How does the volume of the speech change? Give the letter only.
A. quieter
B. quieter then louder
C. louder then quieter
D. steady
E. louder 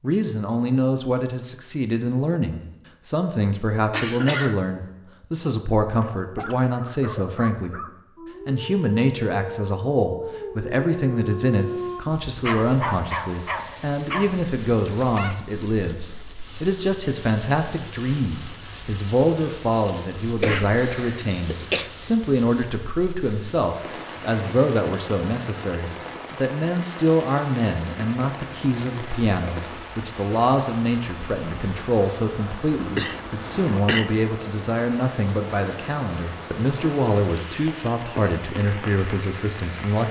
D.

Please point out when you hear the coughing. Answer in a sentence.
The coughing can be heard from 3.9 to 4.6 s, from 20.4 to 21.9 s and from 32.8 to 34.1 s.